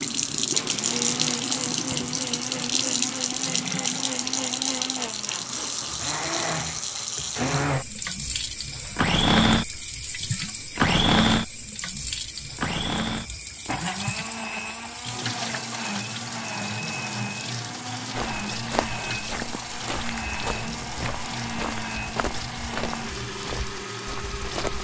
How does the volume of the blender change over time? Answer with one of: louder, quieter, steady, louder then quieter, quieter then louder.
louder then quieter.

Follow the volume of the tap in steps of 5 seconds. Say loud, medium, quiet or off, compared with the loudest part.
loud, medium, medium, medium, medium.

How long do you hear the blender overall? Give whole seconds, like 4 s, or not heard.
25 s.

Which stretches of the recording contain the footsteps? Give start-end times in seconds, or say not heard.
18.1-24.7.